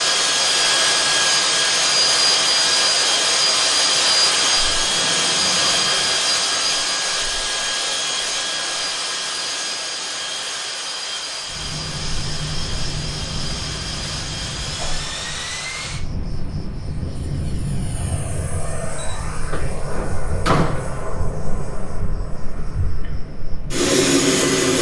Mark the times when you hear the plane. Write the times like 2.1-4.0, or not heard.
0.0-24.7.